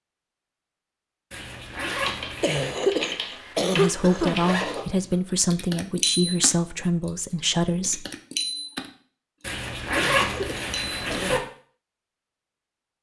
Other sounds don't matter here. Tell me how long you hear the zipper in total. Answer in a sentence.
You can hear the zipper for 4 seconds altogether.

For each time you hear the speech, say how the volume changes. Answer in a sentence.
The speech can be heard from 3.7 to 8.1 s, at a steady volume.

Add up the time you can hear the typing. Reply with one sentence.
You can hear the typing for 7 seconds altogether.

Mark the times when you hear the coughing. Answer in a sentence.
The coughing can be heard from 2.4 to 4.4 s and from 9.9 to 11.3 s.